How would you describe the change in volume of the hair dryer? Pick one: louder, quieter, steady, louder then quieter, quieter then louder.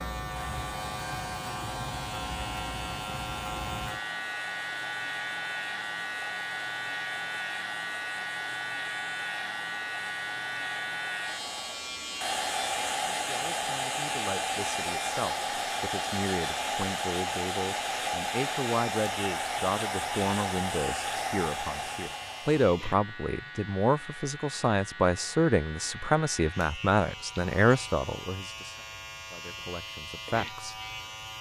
louder.